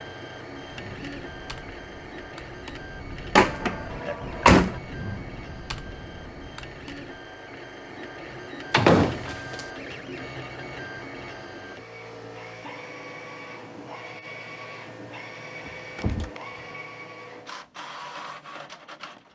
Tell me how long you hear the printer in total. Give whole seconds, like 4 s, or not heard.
19 s.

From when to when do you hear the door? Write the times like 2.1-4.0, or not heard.
3.4-4.8, 8.7-9.6, 15.7-16.3.